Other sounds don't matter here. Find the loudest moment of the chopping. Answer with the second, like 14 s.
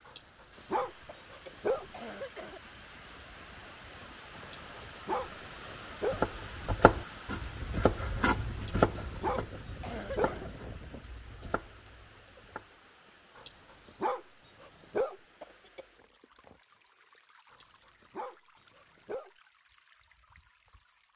9 s.